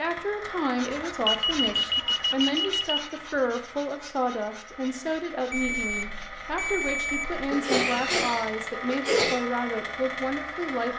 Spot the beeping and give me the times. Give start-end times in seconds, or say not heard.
1.2-3.0, 5.5-7.5.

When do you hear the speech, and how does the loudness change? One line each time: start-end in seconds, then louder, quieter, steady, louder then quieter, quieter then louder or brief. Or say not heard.
0.0-10.9 steady.